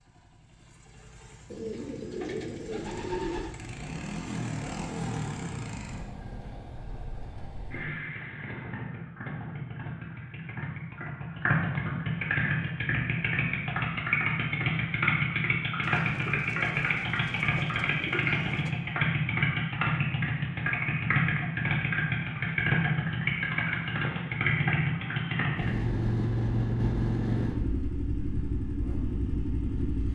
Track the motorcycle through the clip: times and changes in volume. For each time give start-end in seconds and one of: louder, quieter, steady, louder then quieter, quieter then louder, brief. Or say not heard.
0.0-30.1 louder.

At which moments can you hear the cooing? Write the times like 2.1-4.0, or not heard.
1.5-3.5, 15.8-18.8.